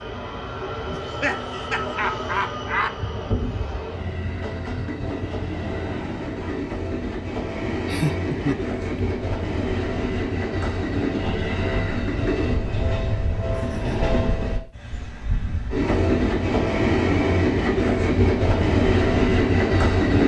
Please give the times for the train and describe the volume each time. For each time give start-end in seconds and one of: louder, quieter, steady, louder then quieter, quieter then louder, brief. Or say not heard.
0.0-20.2 louder.